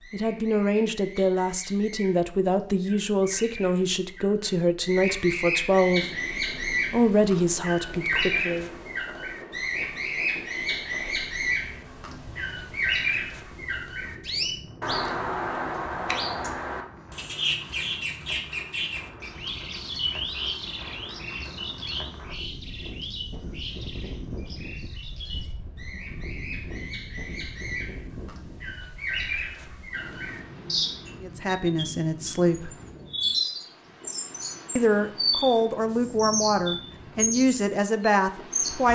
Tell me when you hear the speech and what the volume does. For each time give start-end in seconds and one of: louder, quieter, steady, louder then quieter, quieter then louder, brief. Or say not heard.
0.1-8.7 steady
31.2-32.8 brief
34.8-38.8 steady.